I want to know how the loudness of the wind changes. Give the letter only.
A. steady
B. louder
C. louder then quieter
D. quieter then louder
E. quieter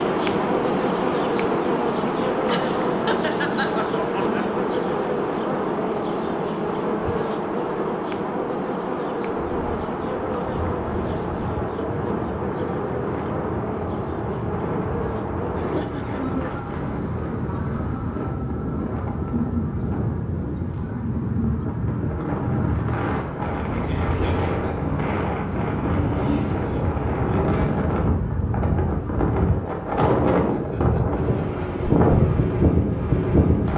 B.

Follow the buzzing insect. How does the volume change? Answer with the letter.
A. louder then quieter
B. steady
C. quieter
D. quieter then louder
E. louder
C.